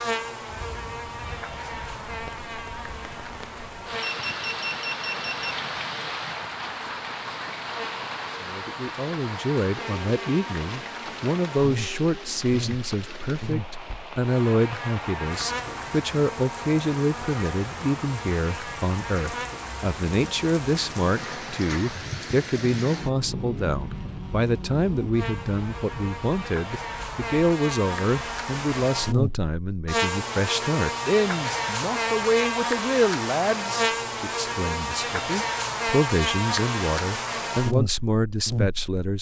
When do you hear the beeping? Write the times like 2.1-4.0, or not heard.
4.0-5.5.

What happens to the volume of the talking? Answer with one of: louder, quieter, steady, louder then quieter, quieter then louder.
steady.